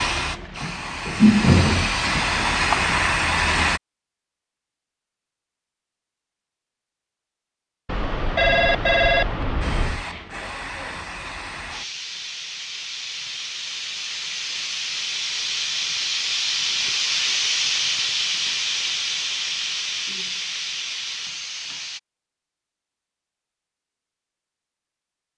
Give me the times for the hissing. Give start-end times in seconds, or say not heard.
0.0-3.8, 9.6-22.0.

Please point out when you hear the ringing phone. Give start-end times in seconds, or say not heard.
7.8-10.1.